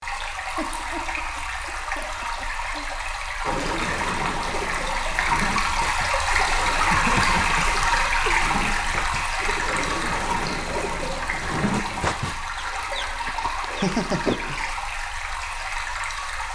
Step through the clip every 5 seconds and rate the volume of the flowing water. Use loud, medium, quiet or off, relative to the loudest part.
medium, loud, medium, medium.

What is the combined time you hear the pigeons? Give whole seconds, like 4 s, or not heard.
11 s.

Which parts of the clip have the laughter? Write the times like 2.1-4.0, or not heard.
0.6-2.9, 6.9-8.8, 13.2-14.8.